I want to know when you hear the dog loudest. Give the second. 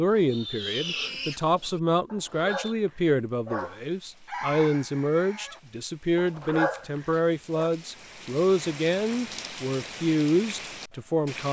7 s.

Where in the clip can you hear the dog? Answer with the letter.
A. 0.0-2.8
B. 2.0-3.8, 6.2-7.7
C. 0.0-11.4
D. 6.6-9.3
B.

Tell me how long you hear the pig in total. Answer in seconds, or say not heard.
3 s.